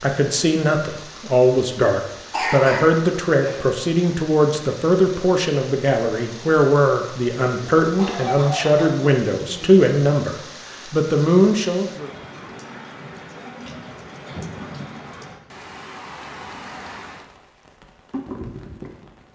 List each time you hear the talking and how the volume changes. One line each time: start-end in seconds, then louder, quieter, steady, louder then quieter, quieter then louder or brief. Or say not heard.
0.0-12.1 steady.